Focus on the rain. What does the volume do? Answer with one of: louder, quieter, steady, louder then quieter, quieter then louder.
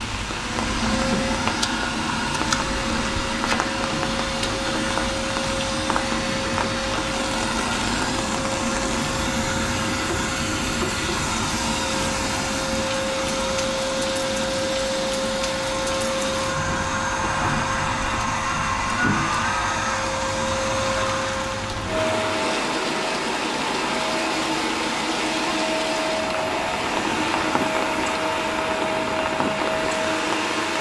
steady.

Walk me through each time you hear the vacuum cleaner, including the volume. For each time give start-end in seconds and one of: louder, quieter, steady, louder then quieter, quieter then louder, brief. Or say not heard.
0.0-30.7 steady.